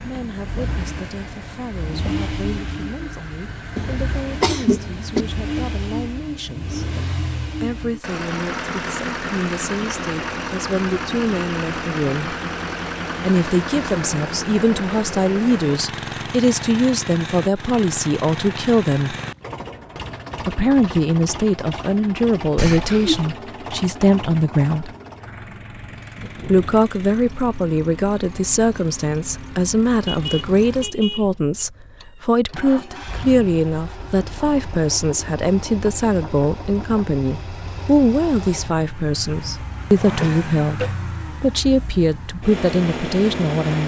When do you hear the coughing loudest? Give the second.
5 s.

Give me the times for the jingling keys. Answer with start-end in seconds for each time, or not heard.
not heard.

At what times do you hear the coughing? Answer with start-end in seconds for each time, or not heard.
3.8-5.2, 22.6-23.3, 40.0-41.0.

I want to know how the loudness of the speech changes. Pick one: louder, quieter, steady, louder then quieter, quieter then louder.
louder.